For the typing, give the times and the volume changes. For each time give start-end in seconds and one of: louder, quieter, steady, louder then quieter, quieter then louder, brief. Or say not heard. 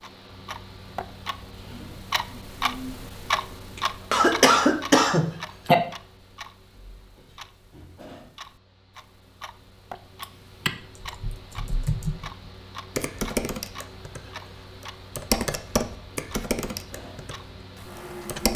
10.2-14.2 quieter then louder
14.8-17.4 brief
17.9-18.5 brief.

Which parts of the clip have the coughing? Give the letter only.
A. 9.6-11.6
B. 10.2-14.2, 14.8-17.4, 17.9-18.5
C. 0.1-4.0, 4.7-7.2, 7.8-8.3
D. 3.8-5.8
D.